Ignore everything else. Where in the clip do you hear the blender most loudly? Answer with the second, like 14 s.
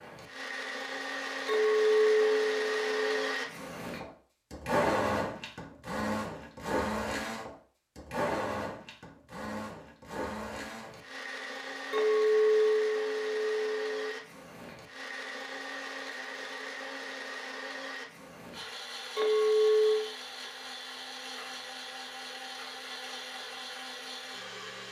5 s.